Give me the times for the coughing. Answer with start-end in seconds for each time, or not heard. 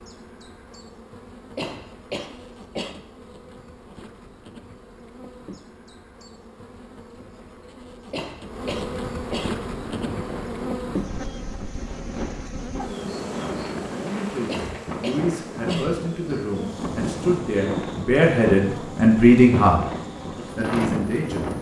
1.6-3.0, 8.1-9.6, 14.4-16.1.